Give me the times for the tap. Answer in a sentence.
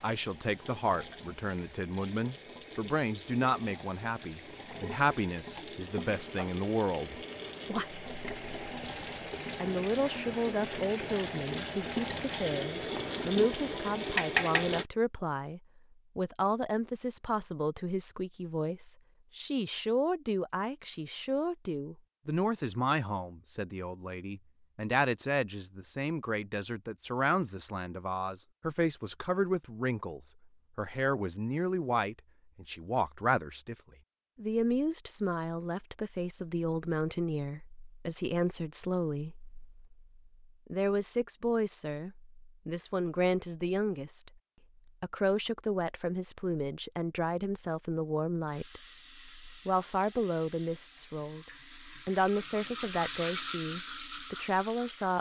The tap can be heard from 0.0 to 14.8 s and from 48.5 to 55.1 s.